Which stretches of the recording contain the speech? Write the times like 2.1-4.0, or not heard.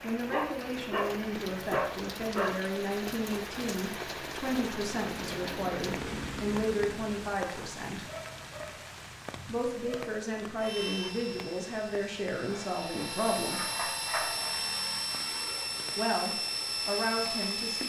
0.0-8.1, 9.4-13.6, 15.9-17.8.